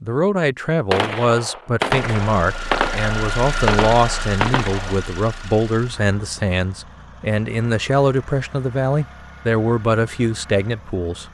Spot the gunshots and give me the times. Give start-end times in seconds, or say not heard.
0.9-5.0.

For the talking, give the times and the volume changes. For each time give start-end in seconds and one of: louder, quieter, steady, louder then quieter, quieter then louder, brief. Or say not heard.
0.0-11.2 steady.